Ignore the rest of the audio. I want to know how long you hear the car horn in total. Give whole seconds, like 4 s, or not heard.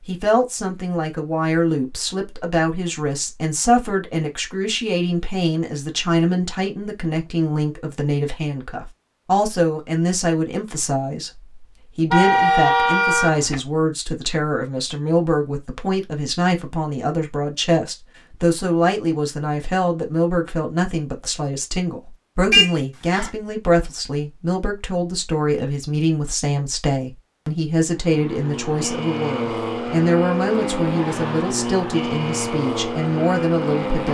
2 s.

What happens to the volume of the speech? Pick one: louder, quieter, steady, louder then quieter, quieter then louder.
steady.